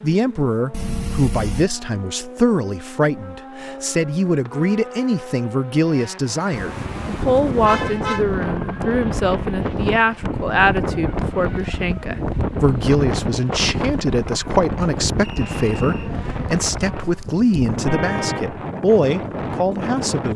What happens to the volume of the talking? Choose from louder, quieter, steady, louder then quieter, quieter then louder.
steady.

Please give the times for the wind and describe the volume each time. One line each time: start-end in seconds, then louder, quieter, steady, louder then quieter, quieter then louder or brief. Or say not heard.
6.5-20.3 steady.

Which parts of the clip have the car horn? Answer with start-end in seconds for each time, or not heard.
0.7-1.6, 7.6-8.2, 17.9-18.5.